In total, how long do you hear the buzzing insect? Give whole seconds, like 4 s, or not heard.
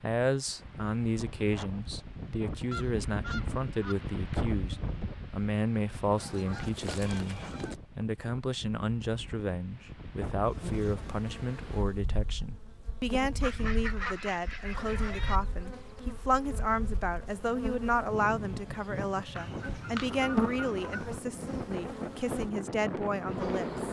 13 s.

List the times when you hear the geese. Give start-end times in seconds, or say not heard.
2.7-4.0, 6.2-7.8, 13.4-15.4, 19.4-21.2.